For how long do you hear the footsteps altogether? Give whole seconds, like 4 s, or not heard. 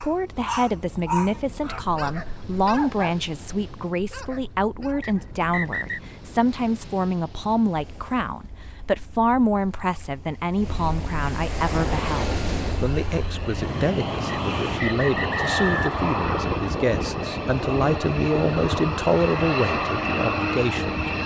not heard.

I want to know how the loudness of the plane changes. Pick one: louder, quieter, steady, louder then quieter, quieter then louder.
louder.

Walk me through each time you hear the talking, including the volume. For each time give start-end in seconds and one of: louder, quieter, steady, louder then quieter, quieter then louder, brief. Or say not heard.
0.0-21.2 steady.